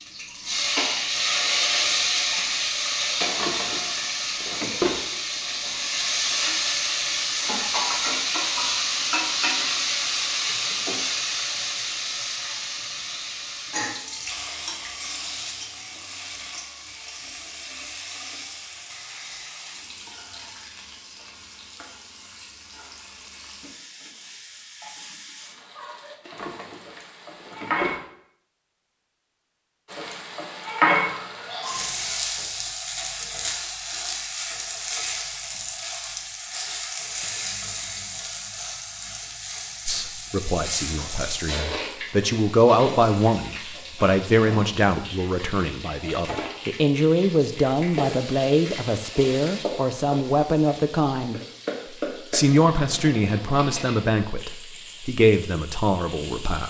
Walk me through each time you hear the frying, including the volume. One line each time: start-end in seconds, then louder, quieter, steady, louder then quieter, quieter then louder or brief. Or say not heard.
0.0-28.0 quieter
29.9-56.6 quieter.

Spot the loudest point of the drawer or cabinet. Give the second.
5 s.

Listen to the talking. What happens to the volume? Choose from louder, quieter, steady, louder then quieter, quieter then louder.
steady.